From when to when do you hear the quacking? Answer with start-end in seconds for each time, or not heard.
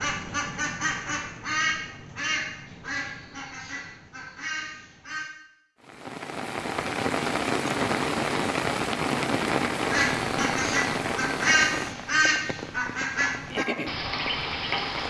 0.0-5.3, 9.9-15.0.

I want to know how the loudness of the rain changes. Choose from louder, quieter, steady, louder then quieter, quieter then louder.
quieter.